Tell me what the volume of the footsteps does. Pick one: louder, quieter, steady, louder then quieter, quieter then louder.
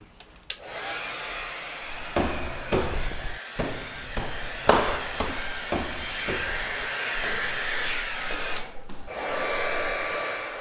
quieter.